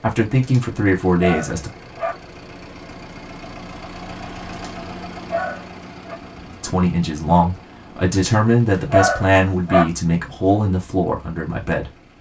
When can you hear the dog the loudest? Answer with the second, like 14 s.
9 s.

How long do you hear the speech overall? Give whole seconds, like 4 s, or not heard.
7 s.